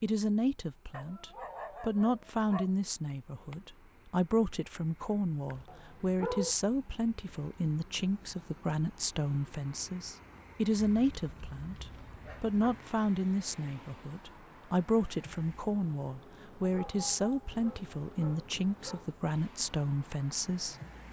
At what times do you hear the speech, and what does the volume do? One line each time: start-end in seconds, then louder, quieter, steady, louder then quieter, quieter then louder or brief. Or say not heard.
0.0-20.8 steady.